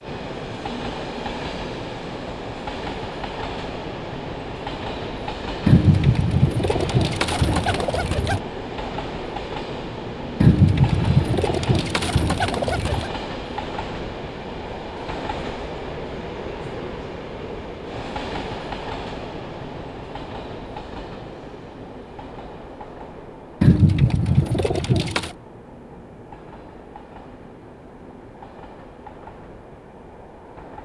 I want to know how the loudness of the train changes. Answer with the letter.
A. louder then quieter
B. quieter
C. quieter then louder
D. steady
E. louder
B.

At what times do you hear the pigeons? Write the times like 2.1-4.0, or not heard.
5.7-8.4, 10.4-13.1, 23.6-25.3.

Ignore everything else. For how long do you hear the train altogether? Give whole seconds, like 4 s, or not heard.
31 s.